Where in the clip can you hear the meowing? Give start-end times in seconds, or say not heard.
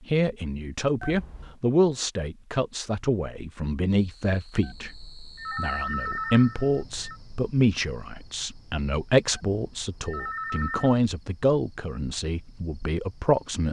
not heard.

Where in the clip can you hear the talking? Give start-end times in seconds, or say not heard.
0.1-13.6.